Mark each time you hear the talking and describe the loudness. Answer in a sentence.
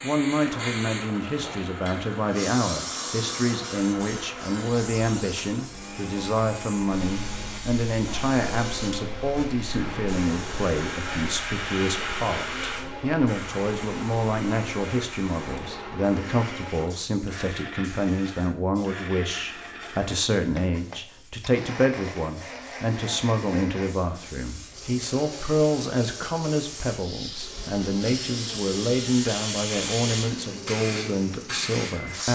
The talking can be heard from 0.0 to 32.3 s, at a steady volume.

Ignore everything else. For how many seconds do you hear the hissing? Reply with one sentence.
The hissing can be heard for 32 seconds in total.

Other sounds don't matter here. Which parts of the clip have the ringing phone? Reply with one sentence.
You can't hear the ringing phone here.